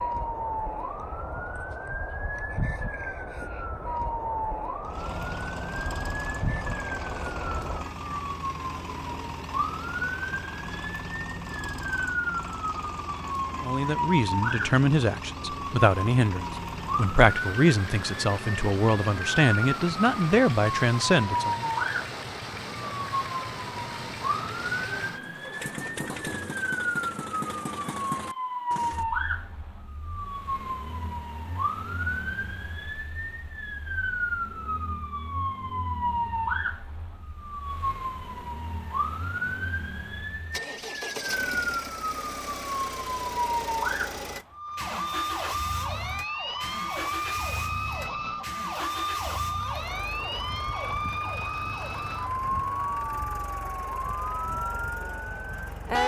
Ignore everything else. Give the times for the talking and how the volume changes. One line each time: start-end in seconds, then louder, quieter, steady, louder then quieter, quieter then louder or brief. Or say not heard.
13.6-21.7 steady.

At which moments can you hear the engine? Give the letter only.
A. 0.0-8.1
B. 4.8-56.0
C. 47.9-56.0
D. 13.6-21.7
B.